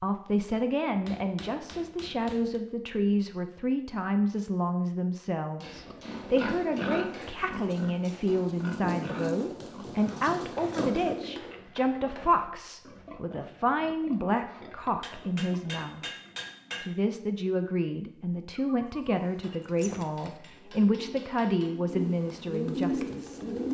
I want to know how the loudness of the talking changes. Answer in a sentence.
The loudness of the talking stays about the same.